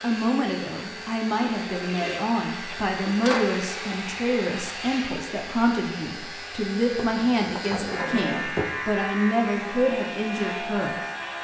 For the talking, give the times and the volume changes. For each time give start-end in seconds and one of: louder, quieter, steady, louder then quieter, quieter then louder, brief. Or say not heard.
0.0-11.0 steady.